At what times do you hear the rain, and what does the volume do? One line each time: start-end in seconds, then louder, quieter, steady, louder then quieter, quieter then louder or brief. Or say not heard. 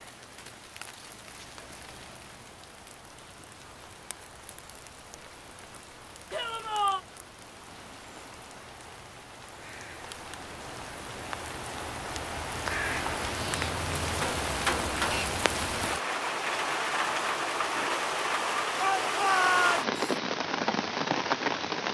0.0-21.8 louder.